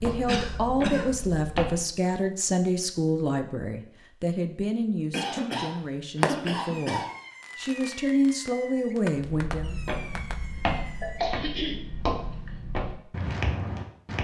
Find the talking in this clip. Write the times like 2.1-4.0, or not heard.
0.0-9.8.